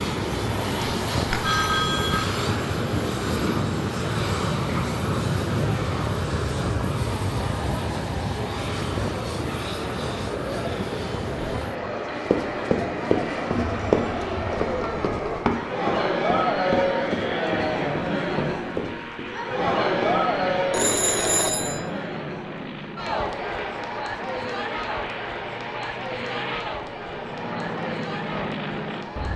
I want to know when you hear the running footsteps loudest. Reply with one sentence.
The volume of the running footsteps peaks at 14 seconds.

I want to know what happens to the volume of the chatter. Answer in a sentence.
The loudness of the chatter goes up, then down.